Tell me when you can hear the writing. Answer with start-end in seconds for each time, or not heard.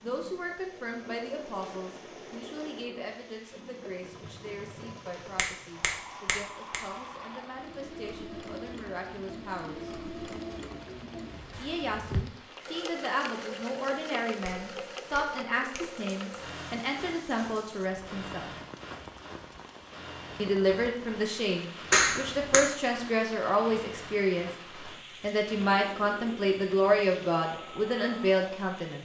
not heard.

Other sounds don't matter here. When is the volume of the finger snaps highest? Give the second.
22 s.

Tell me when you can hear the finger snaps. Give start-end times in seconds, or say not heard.
5.3-6.8, 14.4-15.9, 21.9-22.6.